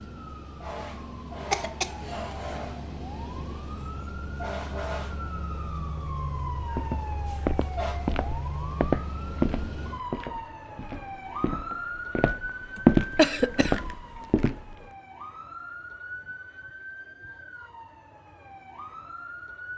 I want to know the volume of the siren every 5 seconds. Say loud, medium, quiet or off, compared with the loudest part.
loud, loud, loud, medium.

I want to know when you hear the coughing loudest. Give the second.
13 s.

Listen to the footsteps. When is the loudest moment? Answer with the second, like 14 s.
13 s.